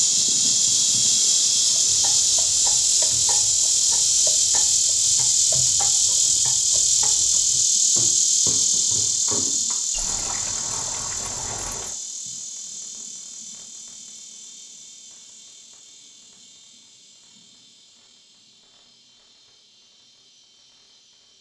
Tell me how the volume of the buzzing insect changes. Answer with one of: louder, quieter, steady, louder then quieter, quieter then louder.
quieter.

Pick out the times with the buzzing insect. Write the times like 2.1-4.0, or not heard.
0.0-21.3.